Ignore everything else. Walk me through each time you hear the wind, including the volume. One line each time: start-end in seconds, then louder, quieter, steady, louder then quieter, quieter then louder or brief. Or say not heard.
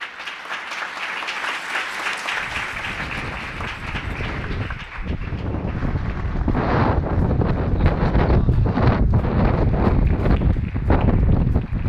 2.3-11.8 louder.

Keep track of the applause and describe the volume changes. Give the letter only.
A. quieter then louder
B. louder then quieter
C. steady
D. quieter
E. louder
D.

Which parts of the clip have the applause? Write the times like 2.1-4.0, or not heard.
0.0-11.8.